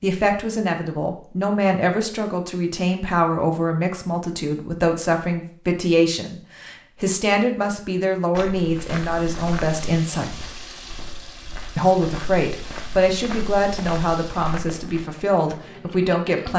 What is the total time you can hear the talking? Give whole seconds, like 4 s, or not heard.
15 s.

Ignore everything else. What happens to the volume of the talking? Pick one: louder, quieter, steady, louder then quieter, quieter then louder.
steady.